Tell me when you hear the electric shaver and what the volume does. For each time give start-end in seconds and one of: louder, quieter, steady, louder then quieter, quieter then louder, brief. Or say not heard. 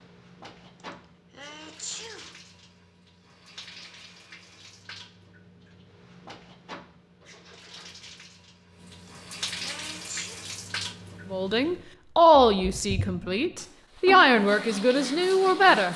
not heard.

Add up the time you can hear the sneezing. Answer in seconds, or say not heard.
3 s.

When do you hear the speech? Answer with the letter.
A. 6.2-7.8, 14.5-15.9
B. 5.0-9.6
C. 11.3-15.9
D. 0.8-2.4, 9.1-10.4
C.